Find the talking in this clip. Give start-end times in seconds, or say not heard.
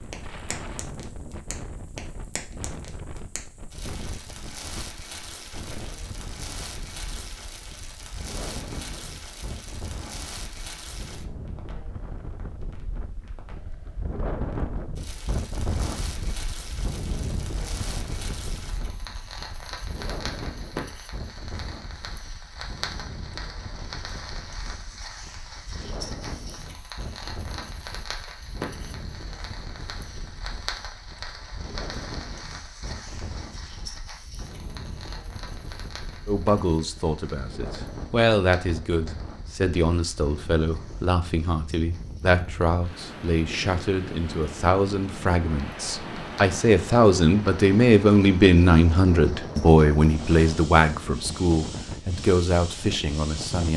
36.2-53.7.